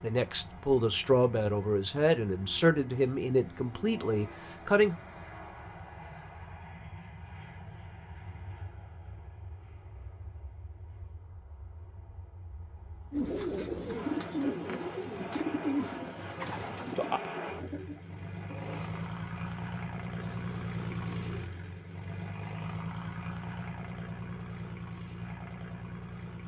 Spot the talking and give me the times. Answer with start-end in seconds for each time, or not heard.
0.0-5.0.